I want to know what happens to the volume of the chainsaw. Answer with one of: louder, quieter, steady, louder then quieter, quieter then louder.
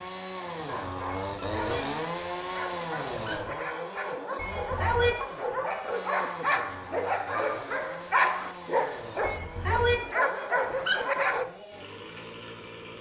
quieter.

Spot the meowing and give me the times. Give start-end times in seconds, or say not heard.
1.4-1.9, 4.3-5.1, 9.2-9.9.